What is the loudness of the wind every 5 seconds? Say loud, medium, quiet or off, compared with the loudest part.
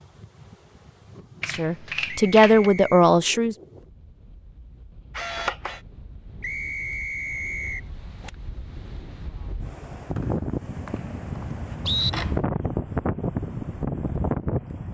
quiet, quiet, loud.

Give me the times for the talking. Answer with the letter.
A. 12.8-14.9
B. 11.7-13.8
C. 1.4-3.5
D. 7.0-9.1
C.